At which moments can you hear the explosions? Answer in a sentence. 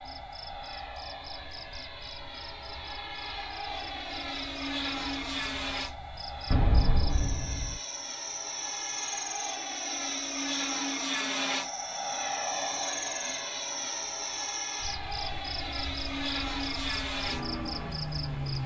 The explosions can be heard from 6.5 to 7.8 s.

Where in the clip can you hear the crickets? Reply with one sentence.
You can hear the crickets from 0.0 to 18.6 s.